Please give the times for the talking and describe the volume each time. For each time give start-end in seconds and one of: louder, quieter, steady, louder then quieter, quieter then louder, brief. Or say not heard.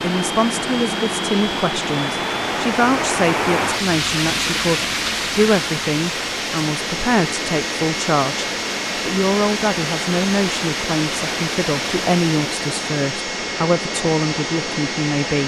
0.0-15.4 steady.